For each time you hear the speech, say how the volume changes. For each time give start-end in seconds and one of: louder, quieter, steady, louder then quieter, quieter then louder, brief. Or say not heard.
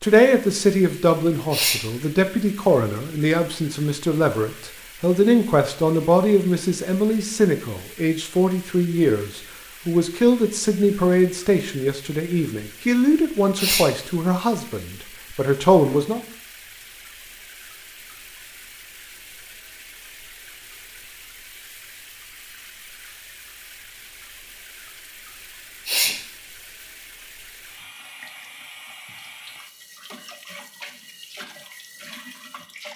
0.0-16.2 steady.